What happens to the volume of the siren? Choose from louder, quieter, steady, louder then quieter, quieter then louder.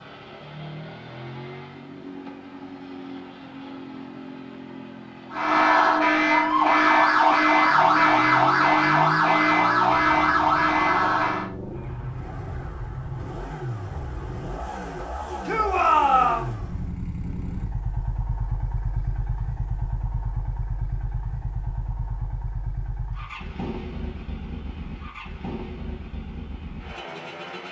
steady.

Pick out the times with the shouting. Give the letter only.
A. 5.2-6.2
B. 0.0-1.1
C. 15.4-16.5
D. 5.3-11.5
C.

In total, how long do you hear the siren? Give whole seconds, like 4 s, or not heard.
6 s.